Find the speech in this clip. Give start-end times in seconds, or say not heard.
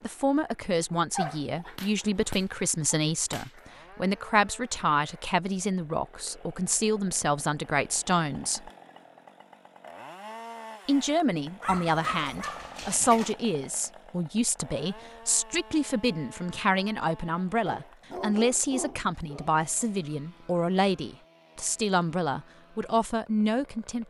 0.0-8.7, 10.8-24.0.